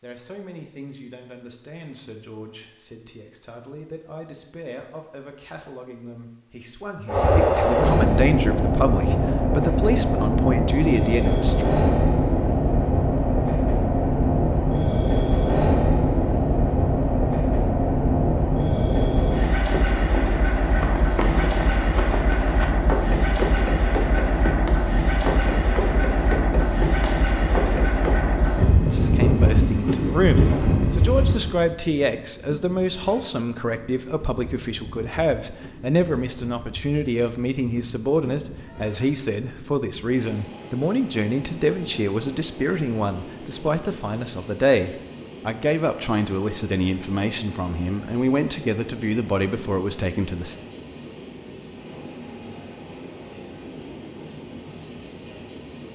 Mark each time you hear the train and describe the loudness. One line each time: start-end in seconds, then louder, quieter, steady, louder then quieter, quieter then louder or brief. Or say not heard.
7.0-55.8 quieter.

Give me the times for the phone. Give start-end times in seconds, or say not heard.
not heard.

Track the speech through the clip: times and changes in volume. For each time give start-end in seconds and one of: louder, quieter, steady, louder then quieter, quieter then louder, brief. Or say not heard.
0.0-11.7 louder
28.9-50.5 steady.